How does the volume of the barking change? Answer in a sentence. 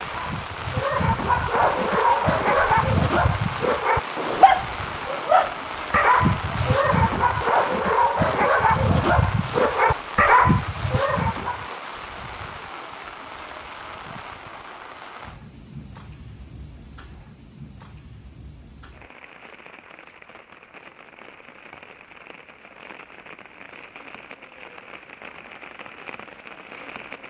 The loudness of the barking stays about the same.